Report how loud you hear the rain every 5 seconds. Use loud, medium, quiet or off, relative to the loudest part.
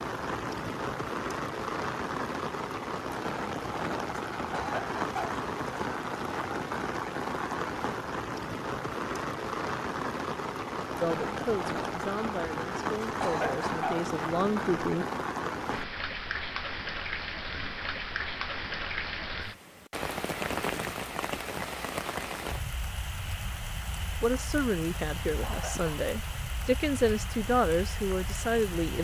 loud, loud, loud, loud, loud, medium.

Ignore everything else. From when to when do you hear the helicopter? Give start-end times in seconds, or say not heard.
not heard.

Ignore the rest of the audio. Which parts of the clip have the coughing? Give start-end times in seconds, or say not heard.
4.5-5.4, 13.2-14.1, 25.4-26.1.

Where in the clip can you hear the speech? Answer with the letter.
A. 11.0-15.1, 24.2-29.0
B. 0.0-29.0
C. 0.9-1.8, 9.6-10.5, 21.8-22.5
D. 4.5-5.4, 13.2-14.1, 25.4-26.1
A.